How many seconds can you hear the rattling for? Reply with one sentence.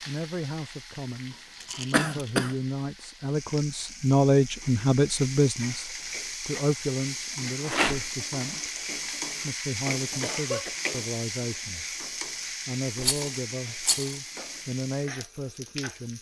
You can hear the rattling for 2 seconds altogether.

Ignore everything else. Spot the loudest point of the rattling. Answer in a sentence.
The volume of the rattling peaks at 8 seconds.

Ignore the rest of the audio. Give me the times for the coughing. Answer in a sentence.
You can hear the coughing from 1.9 to 2.5 s and from 10.2 to 10.8 s.